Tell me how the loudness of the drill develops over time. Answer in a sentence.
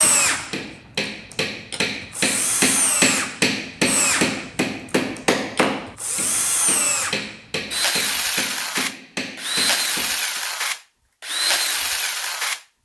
The volume of the drill goes up.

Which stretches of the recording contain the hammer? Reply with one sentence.
You can hear the hammer from 0.0 to 10.4 s.